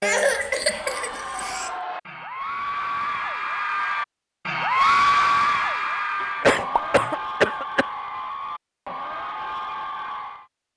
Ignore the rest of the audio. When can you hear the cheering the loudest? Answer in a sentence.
The loudest moment of the cheering is at 5 seconds.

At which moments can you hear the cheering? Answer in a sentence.
The cheering can be heard from 0.7 to 10.4 s.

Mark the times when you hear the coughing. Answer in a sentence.
The coughing can be heard from 0.0 to 1.7 s and from 6.2 to 7.8 s.